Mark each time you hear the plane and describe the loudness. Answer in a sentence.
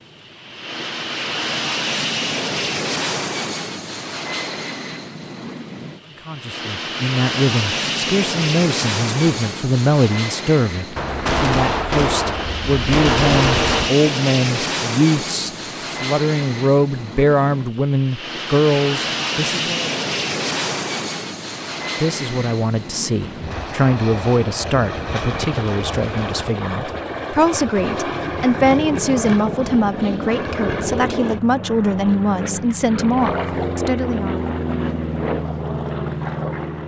You can hear the plane from 0.0 to 36.8 s, at a steady volume.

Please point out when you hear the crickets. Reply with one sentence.
The crickets can't be heard in this clip.